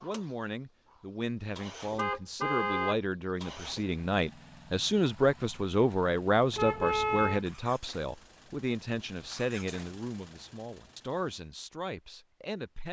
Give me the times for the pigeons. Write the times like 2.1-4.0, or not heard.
not heard.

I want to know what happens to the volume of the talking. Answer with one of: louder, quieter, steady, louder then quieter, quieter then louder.
louder then quieter.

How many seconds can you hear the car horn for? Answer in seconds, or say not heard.
2 s.